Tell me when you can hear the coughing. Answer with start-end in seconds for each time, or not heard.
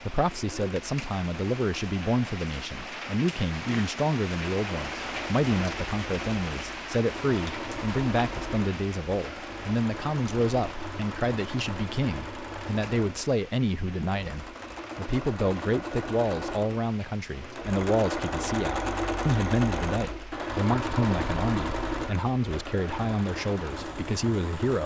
not heard.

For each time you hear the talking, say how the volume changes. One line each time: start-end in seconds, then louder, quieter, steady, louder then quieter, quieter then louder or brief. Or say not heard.
0.0-24.8 steady.